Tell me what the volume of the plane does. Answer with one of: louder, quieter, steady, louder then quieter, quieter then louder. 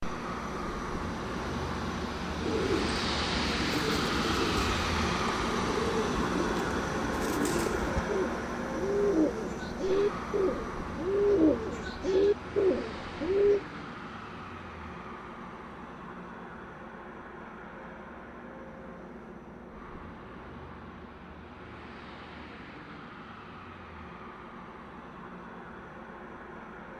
quieter.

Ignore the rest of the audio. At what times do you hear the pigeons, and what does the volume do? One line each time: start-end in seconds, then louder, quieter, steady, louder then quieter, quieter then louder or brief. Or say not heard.
2.4-13.6 louder.